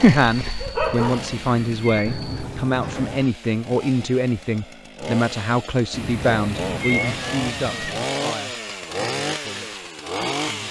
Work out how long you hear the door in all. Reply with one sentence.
The door can be heard for 3 seconds in total.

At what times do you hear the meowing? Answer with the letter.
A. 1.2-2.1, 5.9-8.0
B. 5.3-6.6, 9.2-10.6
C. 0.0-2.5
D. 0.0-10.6
A.